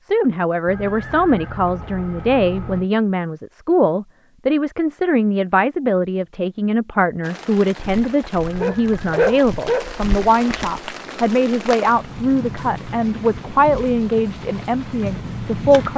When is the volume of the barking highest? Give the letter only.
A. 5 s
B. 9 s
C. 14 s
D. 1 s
B.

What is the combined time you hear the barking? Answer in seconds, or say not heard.
3 s.